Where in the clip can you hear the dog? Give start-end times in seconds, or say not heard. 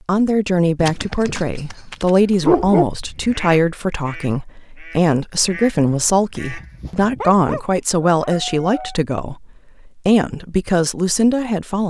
0.8-2.9, 7.2-9.0.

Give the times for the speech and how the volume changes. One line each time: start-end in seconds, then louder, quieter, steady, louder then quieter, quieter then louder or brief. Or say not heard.
0.1-11.8 steady.